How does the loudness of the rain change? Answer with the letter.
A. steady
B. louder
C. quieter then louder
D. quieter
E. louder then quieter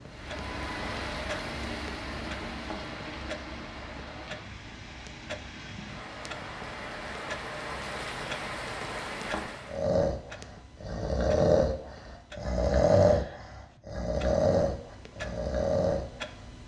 C.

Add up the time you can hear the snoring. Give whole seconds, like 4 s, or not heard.
7 s.